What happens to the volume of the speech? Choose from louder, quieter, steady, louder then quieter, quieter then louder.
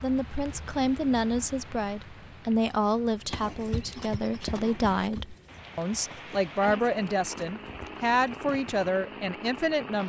steady.